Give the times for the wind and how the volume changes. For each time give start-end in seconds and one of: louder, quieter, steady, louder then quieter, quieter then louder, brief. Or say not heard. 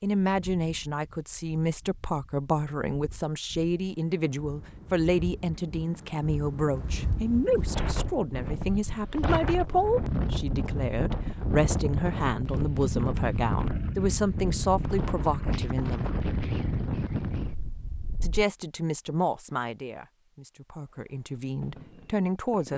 0.2-18.4 louder.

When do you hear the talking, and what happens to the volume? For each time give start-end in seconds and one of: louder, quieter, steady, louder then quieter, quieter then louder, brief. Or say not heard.
0.0-16.1 steady
18.2-22.7 quieter then louder.